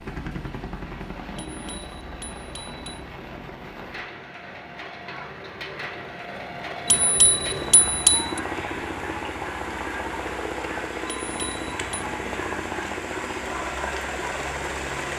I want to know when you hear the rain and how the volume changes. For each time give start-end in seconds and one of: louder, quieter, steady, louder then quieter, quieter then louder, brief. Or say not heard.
0.0-15.1 louder.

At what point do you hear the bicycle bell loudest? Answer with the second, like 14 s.
8 s.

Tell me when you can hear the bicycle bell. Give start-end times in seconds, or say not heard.
1.4-3.0, 6.8-8.4, 11.1-12.1.